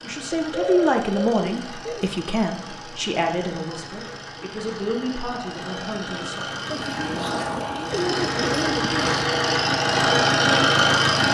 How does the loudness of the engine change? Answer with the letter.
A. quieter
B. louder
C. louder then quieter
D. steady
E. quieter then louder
B.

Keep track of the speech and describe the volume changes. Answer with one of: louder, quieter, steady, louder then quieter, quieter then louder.
quieter.